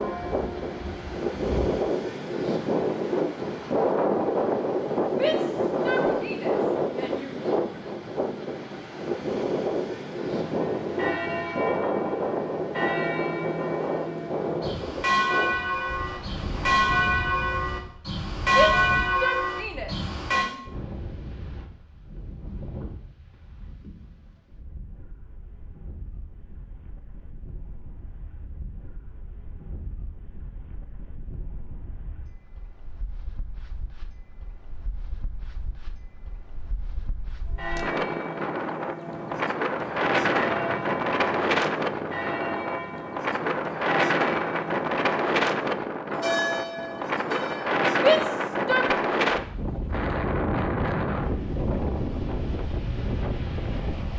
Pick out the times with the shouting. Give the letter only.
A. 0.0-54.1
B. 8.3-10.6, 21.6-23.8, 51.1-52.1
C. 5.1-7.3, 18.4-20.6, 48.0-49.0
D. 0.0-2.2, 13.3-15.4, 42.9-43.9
C.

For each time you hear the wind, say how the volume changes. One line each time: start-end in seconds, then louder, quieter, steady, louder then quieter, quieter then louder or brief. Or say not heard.
0.0-54.1 quieter then louder.